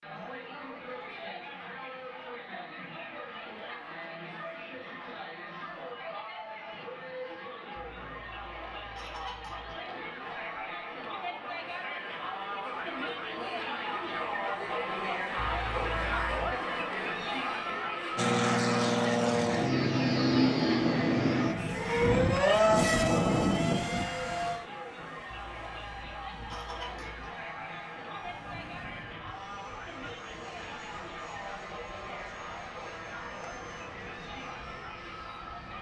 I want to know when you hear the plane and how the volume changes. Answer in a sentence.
The plane can be heard from 18.1 to 35.7 s, getting quieter.